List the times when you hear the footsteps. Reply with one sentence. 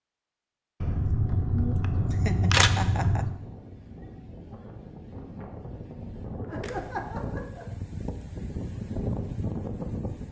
You can't hear the footsteps here.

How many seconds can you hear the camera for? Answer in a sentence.
The camera can be heard for 3 seconds in total.